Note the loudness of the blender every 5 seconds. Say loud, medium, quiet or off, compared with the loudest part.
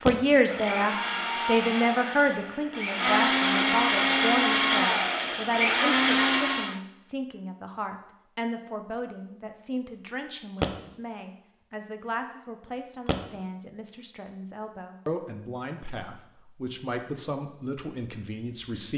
loud, loud, off, off.